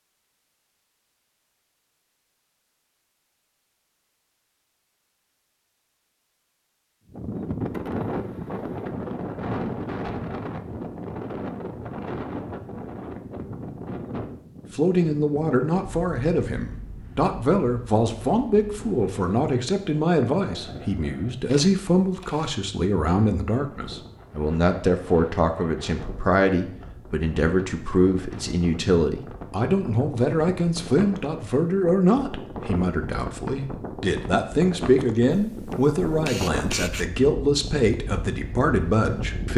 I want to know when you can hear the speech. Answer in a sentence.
The speech can be heard from 14.7 to 39.5 s.